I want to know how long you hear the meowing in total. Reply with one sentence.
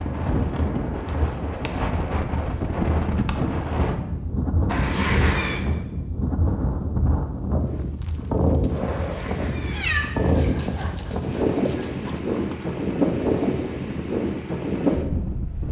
You can hear the meowing for 3 seconds altogether.